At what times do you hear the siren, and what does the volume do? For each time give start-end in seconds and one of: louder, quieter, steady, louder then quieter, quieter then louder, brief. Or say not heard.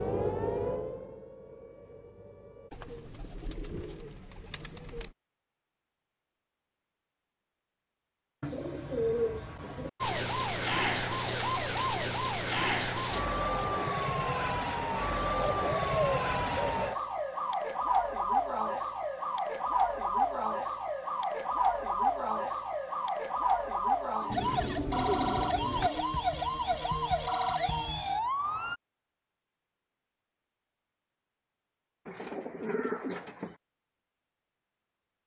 0.0-2.7 brief
10.0-28.8 steady.